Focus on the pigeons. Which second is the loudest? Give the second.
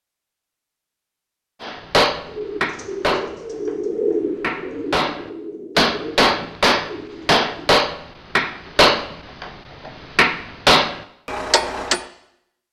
4 s.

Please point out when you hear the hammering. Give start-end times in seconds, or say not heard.
1.6-12.1.